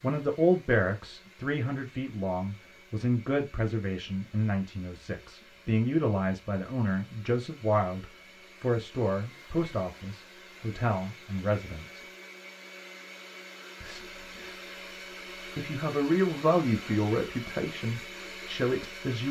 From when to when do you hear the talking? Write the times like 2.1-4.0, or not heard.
0.0-12.1, 13.8-14.6, 15.6-19.2.